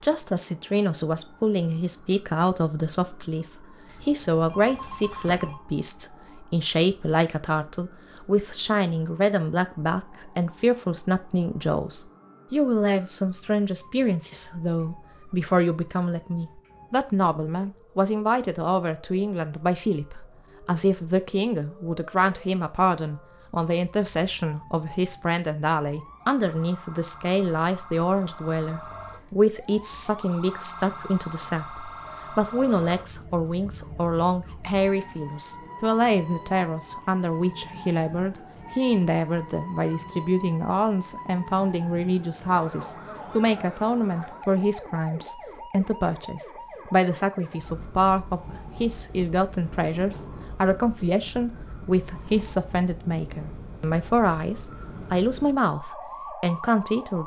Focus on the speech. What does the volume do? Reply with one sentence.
The loudness of the speech stays about the same.